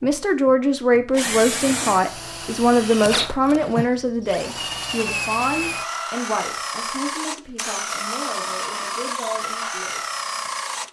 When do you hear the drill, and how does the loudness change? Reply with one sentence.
The drill can be heard from 0.0 to 10.8 s, at a steady volume.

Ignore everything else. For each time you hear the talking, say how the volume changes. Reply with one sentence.
You can hear the talking from 0.0 to 10.1 s, getting quieter.